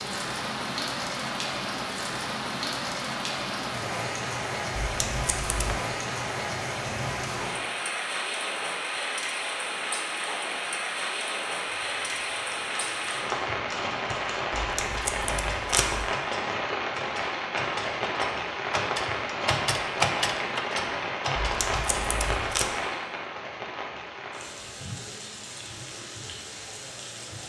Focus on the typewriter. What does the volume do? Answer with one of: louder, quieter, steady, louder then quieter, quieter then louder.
louder.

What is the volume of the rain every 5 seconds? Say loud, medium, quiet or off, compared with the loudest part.
loud, loud, loud, loud, loud, medium.